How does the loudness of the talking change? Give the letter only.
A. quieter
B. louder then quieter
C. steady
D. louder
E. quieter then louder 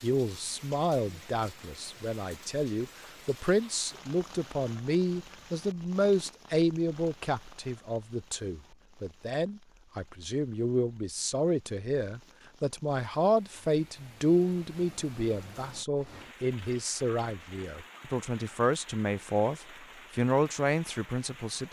C.